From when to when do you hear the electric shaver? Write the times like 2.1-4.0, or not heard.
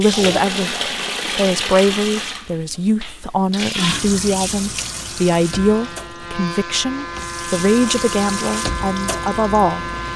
5.0-10.1.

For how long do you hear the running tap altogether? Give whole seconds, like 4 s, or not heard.
10 s.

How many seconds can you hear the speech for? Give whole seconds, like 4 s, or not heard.
10 s.